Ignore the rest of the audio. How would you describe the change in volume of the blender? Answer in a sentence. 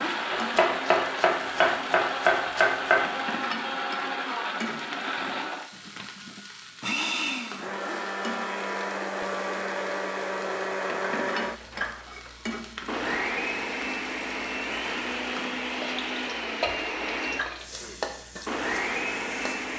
The loudness of the blender stays about the same.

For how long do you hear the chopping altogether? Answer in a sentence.
You can hear the chopping for 3 seconds altogether.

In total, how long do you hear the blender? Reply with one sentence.
You can hear the blender for 20 seconds altogether.